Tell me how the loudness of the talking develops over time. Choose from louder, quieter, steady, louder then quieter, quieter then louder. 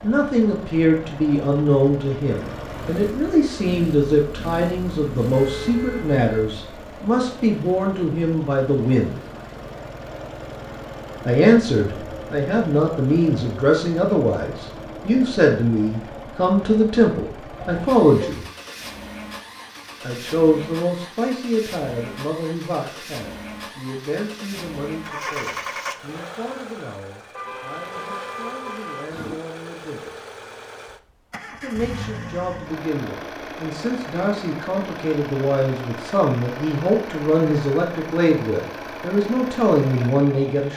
quieter then louder.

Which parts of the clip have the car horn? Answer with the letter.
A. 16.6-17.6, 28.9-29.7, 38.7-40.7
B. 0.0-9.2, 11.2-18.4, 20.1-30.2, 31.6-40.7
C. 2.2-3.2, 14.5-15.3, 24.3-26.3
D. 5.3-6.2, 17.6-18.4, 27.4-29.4
D.